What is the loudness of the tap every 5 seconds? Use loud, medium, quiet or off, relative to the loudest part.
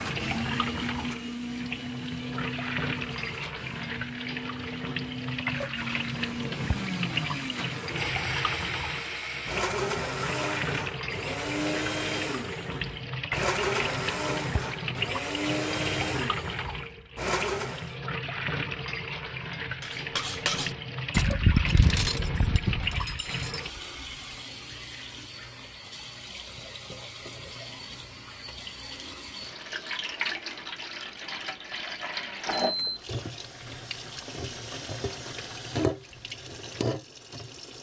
loud, loud, loud, loud, loud, medium, loud, loud.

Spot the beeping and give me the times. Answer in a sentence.
You can hear the beeping from 32.5 to 33.0 s.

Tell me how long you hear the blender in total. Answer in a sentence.
The blender can be heard for 18 seconds in total.